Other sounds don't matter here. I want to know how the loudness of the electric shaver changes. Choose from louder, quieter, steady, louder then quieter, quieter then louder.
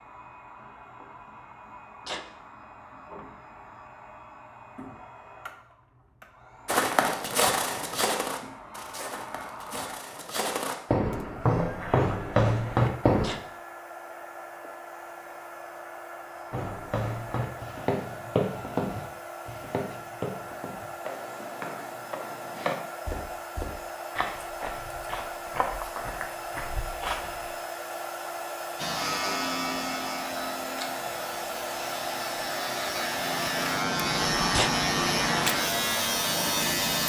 quieter then louder.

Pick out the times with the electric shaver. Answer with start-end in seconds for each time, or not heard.
28.8-37.0.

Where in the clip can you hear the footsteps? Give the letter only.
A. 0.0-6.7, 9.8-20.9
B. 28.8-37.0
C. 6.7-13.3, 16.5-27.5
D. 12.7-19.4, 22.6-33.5
C.